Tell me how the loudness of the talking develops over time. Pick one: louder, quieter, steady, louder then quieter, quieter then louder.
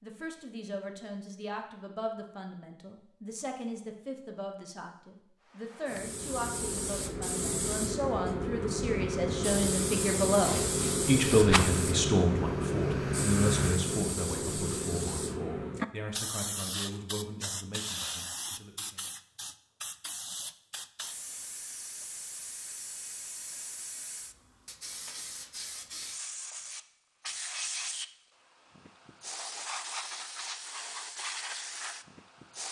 louder then quieter.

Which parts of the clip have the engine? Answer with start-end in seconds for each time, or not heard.
11.3-13.8.